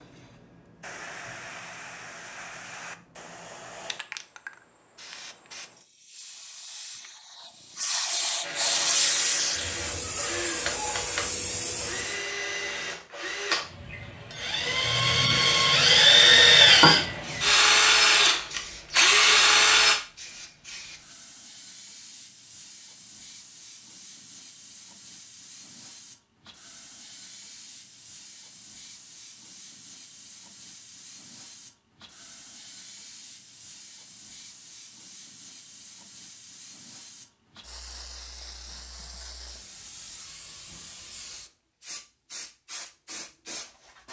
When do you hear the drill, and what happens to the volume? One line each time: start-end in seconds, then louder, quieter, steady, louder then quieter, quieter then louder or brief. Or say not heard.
8.4-19.9 louder.